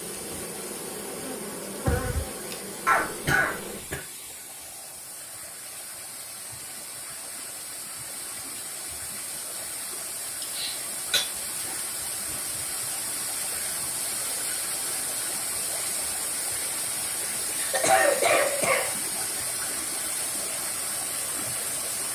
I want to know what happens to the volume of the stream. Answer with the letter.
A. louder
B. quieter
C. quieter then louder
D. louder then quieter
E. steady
A.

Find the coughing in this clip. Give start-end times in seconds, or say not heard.
2.9-4.0, 10.4-11.2, 17.6-18.9.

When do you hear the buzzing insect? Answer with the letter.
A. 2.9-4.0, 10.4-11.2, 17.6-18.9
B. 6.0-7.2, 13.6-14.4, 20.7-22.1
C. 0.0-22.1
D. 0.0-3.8
D.